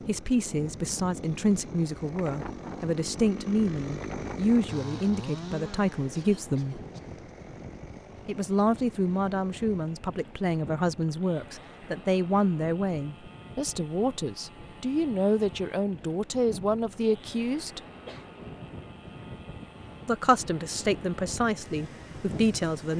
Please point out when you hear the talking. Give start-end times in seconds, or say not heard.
0.0-6.8, 8.2-17.8, 20.1-22.9.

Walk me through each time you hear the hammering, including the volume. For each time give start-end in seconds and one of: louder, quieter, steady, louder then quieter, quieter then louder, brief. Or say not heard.
not heard.